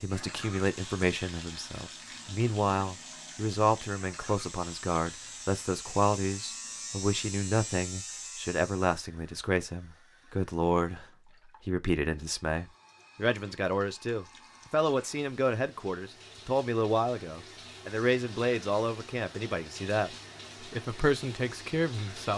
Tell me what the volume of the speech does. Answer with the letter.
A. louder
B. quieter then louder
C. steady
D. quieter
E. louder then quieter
C.